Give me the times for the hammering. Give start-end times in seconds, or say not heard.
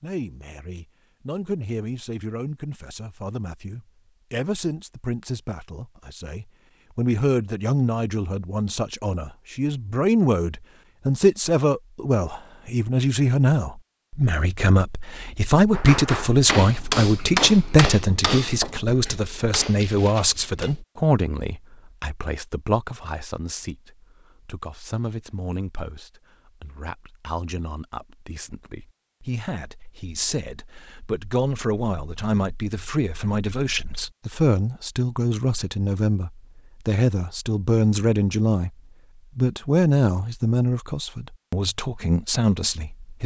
15.7-20.8.